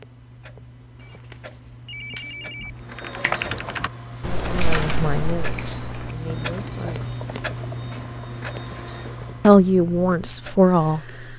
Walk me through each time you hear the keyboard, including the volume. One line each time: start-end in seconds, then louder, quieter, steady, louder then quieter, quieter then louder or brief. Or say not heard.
2.3-8.2 quieter.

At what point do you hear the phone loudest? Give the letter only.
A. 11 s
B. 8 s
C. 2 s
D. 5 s
C.